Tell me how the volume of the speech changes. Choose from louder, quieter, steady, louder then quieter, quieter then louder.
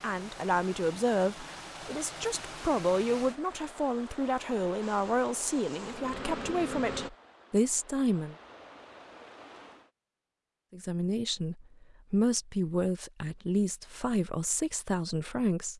steady.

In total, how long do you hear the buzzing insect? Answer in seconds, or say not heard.
2 s.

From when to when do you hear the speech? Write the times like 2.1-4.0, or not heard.
0.0-8.3, 10.7-15.7.